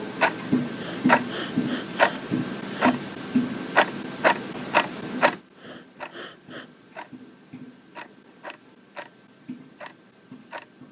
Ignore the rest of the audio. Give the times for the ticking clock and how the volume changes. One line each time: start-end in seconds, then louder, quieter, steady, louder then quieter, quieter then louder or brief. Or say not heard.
0.0-10.8 quieter.